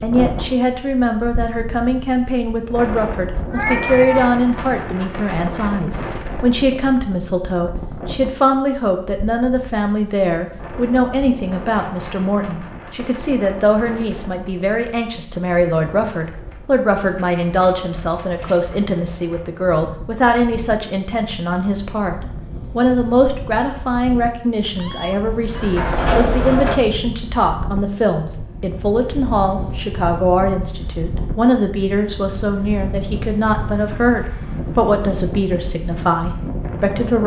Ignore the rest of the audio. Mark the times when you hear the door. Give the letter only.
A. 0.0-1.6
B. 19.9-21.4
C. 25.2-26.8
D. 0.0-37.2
C.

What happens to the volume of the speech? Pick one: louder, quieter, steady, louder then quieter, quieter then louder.
steady.